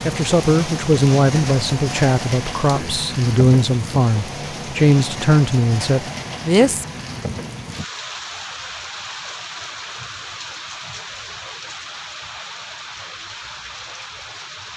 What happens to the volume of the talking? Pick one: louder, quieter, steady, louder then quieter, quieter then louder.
steady.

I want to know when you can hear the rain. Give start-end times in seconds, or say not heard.
0.0-14.7.